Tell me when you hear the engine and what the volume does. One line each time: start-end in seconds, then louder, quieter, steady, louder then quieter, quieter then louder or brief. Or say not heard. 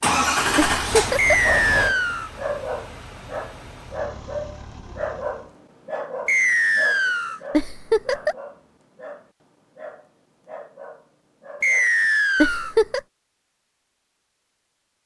0.0-5.5 quieter.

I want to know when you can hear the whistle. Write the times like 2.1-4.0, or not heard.
1.1-2.3, 6.2-7.4, 11.6-12.8.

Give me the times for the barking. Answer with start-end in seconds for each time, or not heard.
1.4-11.9.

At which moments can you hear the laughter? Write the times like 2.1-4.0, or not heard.
0.6-1.5, 7.5-8.3, 12.4-13.0.